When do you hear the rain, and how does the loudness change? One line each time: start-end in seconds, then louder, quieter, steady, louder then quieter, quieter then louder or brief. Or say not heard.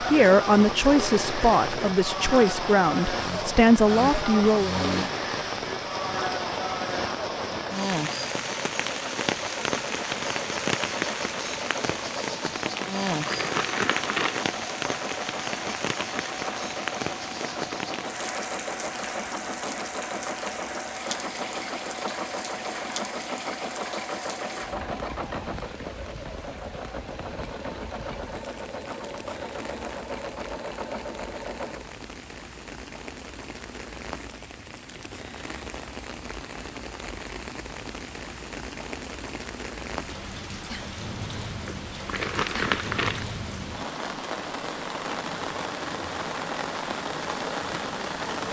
0.0-48.4 quieter then louder.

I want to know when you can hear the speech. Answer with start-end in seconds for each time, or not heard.
0.0-4.7.